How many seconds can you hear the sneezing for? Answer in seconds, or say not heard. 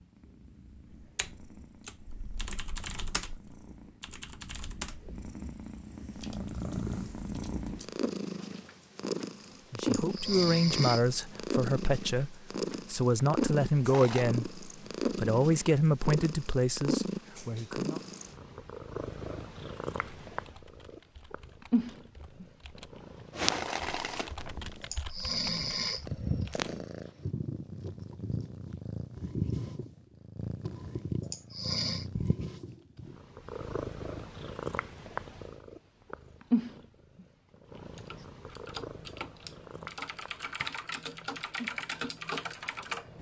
3 s.